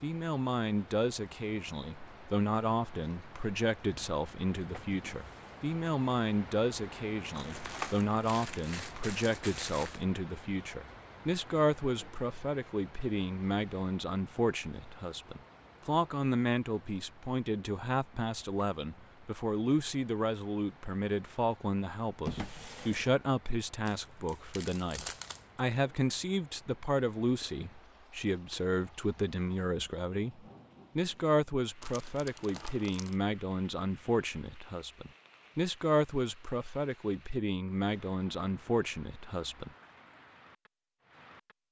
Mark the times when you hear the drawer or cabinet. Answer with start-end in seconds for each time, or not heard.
4.9-5.6, 22.2-23.2.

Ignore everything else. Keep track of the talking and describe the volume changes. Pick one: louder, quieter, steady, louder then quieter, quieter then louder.
steady.